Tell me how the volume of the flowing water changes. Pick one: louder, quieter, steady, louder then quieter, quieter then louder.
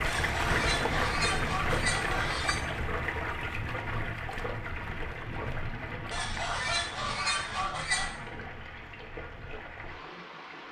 quieter.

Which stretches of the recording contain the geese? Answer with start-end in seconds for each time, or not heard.
0.1-2.6, 6.1-8.1.